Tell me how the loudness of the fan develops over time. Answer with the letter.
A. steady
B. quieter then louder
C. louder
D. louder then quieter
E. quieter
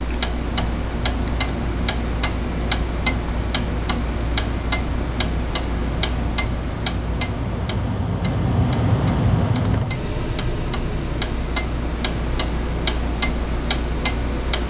D.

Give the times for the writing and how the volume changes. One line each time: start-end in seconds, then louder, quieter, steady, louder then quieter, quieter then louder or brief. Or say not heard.
not heard.